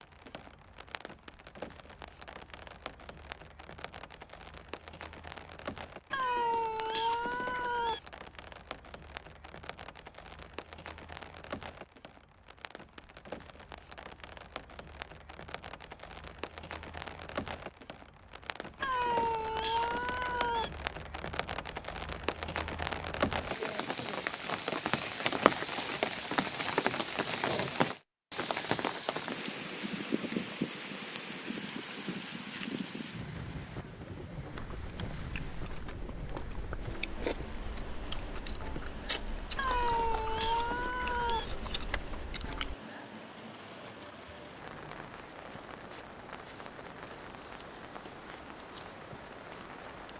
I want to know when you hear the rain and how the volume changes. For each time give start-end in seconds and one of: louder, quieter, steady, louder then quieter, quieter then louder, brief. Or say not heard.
0.0-50.1 louder then quieter.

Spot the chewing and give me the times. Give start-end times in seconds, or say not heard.
34.5-42.8.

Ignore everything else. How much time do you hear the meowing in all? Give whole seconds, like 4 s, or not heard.
6 s.